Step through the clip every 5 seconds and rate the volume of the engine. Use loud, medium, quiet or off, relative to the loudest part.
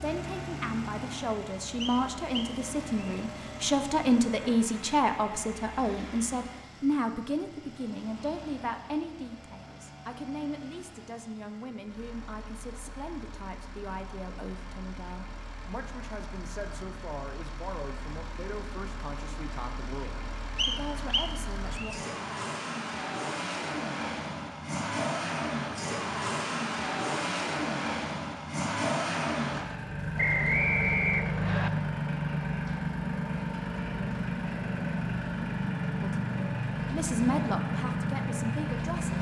medium, quiet, quiet, quiet, medium, loud, loud, loud.